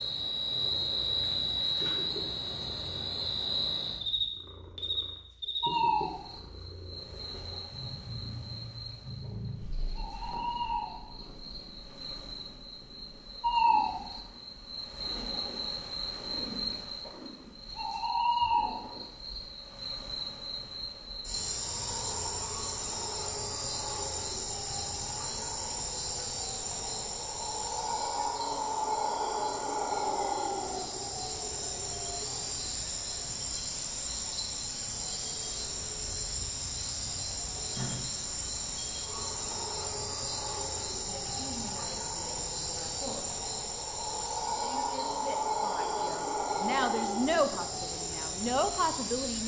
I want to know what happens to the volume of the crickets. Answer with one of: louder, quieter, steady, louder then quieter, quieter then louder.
steady.